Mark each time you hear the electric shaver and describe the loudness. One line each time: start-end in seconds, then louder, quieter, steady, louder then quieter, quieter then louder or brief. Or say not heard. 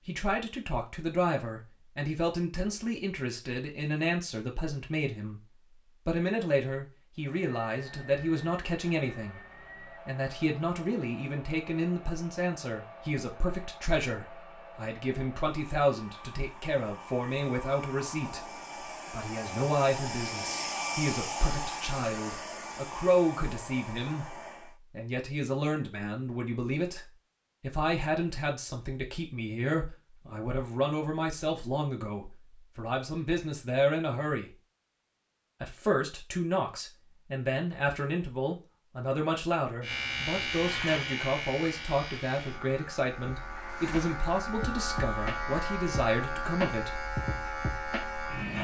39.8-48.5 quieter then louder.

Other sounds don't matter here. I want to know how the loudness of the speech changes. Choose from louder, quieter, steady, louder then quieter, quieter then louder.
steady.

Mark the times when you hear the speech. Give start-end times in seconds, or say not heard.
0.1-34.5, 35.6-47.0.